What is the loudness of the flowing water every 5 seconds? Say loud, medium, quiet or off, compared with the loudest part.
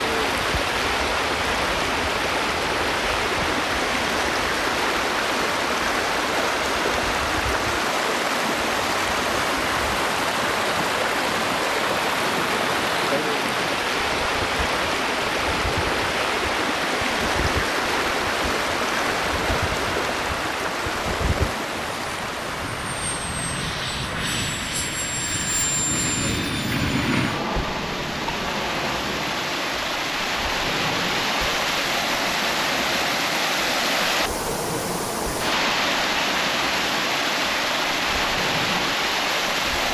loud, loud, loud, loud, medium, medium, loud, loud.